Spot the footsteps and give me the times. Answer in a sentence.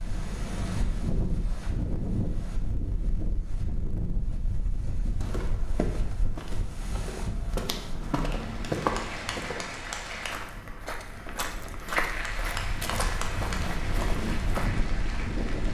You can hear the footsteps from 5.2 to 14.7 s.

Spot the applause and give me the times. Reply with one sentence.
The applause can be heard from 8.2 to 10.4 s and from 12.0 to 15.6 s.